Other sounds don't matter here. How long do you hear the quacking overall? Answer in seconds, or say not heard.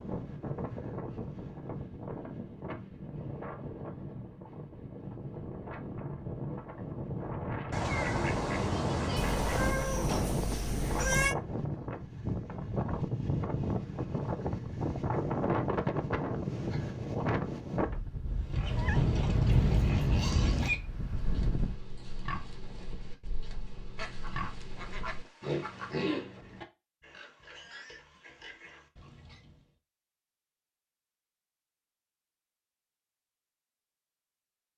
4 s.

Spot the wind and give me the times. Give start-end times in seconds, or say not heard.
0.0-21.8.